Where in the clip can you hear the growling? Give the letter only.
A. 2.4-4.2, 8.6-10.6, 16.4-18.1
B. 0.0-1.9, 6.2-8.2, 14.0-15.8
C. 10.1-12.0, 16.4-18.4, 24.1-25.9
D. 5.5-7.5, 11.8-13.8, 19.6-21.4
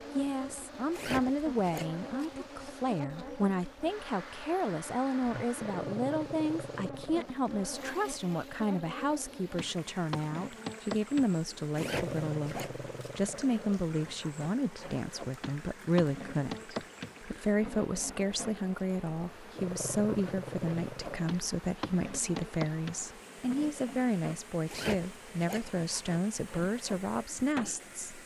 D.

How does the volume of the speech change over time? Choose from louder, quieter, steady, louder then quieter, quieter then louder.
steady.